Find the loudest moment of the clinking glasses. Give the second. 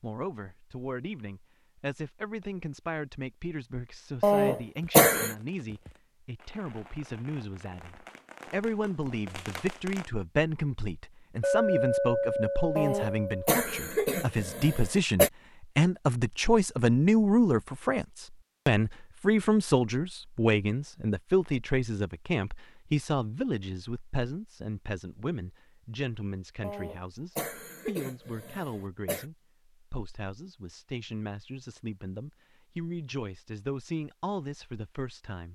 12 s.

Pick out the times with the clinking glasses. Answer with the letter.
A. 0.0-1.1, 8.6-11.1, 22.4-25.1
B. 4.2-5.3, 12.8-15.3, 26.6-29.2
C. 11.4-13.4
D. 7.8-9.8
C.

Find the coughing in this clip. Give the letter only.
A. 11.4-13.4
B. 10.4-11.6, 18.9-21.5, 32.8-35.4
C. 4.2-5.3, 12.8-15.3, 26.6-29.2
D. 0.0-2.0
C.